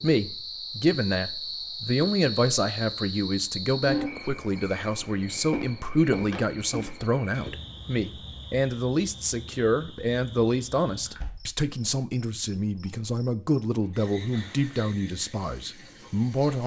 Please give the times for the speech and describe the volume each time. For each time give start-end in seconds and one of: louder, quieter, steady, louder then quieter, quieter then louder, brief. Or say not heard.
0.0-16.6 steady.